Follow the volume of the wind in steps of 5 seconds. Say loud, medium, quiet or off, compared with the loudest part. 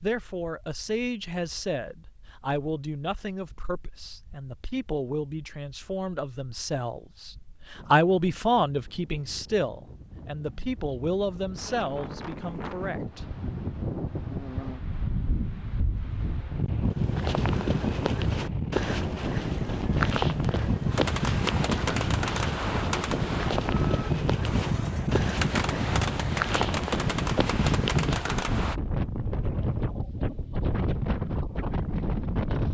quiet, quiet, medium, loud, loud, loud, loud.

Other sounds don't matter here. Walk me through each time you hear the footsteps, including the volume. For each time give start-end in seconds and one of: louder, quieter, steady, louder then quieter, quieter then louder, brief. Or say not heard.
16.9-28.4 steady.